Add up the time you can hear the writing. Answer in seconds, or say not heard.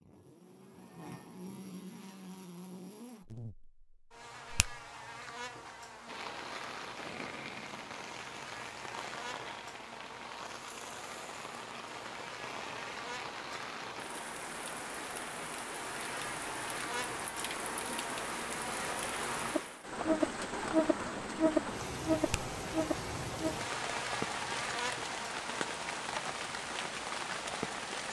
not heard.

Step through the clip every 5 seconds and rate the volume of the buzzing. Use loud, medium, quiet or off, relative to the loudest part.
quiet, quiet, quiet, medium, loud, quiet.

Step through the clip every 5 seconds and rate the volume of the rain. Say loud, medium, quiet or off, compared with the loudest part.
off, medium, medium, loud, loud, loud.